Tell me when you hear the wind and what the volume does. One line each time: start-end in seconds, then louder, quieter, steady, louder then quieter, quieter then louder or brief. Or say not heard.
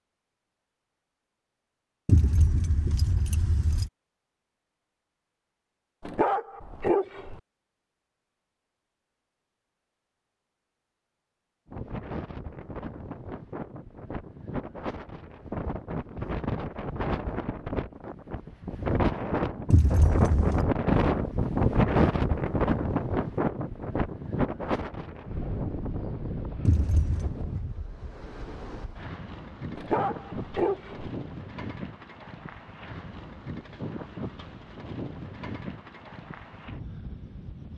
11.7-37.7 louder then quieter.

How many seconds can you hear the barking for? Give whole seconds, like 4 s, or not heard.
3 s.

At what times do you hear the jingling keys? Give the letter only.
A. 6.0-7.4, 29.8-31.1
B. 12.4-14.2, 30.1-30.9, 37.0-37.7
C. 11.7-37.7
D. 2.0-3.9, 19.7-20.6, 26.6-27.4
D.